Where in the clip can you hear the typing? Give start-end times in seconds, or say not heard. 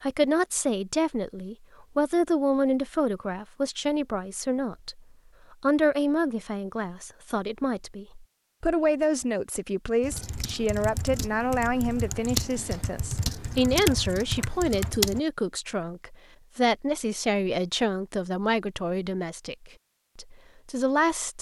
10.0-15.2.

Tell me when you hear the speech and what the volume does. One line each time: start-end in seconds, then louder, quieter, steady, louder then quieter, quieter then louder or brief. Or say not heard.
0.0-21.3 steady.